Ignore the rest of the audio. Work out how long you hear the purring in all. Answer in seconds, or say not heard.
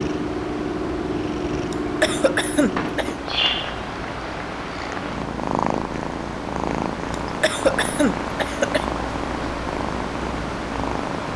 11 s.